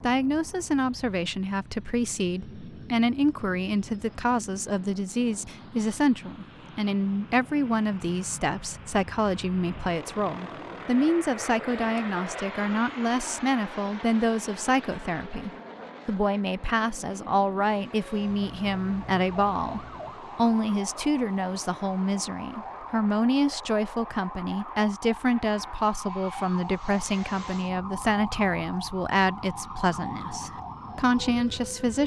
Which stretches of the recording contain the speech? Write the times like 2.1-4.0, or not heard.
0.0-32.0.